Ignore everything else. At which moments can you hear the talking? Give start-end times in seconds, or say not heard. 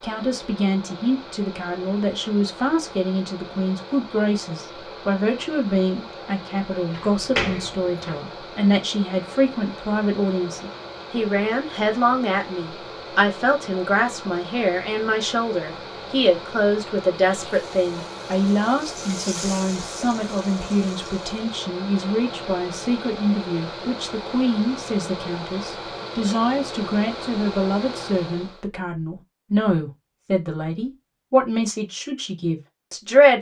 0.0-33.3.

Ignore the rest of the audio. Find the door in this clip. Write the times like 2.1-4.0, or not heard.
6.9-8.2.